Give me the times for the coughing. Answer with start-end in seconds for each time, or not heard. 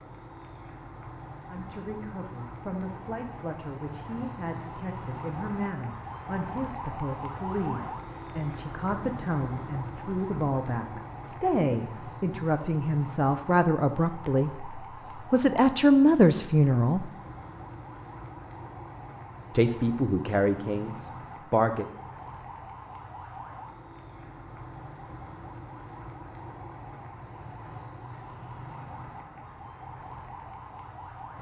not heard.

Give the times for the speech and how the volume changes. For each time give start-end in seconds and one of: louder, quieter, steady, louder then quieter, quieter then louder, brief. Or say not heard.
1.5-17.1 louder
19.5-21.9 brief.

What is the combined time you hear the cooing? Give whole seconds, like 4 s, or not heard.
not heard.